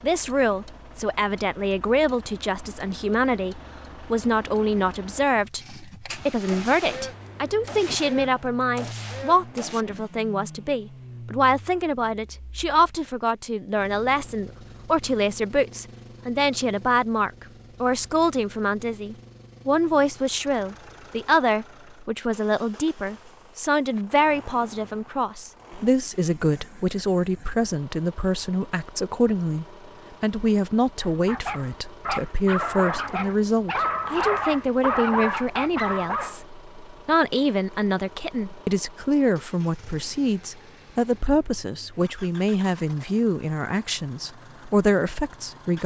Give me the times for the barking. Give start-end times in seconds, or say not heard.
31.0-36.4.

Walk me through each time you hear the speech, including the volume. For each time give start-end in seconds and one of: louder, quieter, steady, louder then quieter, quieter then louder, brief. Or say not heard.
0.0-45.8 steady.